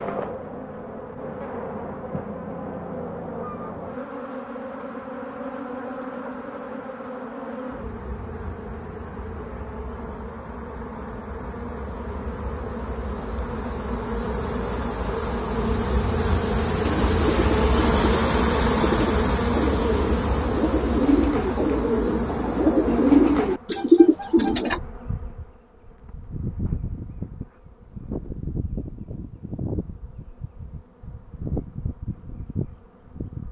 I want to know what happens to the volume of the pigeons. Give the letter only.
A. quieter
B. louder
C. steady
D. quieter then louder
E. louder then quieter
B.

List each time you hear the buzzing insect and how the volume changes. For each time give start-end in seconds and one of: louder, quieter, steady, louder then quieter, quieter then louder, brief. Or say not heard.
0.0-33.4 louder then quieter.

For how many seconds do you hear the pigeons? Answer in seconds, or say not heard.
8 s.